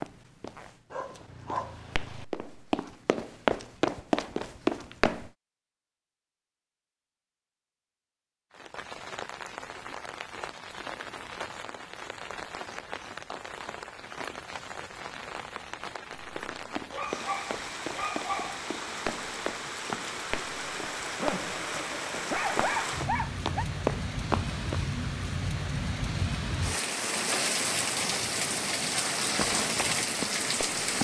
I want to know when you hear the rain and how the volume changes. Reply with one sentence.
The rain can be heard from 8.5 to 30.9 s, getting louder.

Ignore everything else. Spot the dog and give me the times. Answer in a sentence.
You can hear the dog from 0.9 to 2.2 s, from 16.9 to 18.6 s and from 21.1 to 23.6 s.